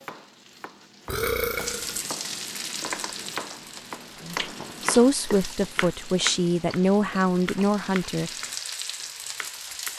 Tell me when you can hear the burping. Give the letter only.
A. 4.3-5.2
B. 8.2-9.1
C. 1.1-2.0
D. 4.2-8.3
C.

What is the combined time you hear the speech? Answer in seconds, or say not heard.
4 s.